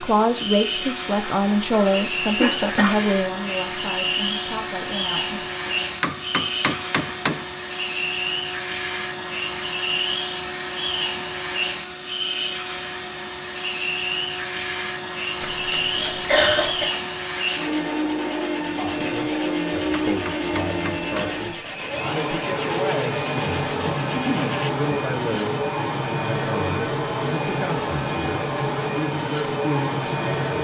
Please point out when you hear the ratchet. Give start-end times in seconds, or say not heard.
not heard.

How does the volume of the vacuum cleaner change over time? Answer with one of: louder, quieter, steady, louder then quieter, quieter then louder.
steady.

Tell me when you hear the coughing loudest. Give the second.
16 s.